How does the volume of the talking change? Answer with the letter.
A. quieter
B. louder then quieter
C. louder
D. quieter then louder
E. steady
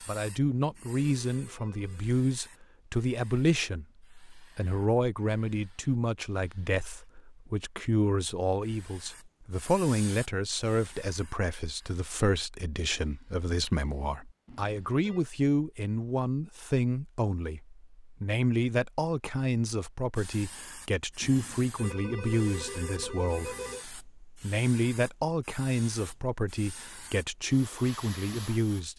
E.